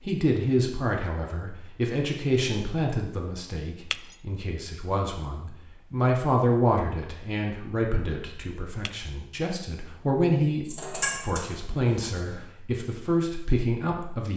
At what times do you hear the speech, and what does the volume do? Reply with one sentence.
The speech can be heard from 0.1 to 14.3 s, getting quieter then louder.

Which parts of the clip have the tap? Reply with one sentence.
You can hear the tap from 10.7 to 12.4 s.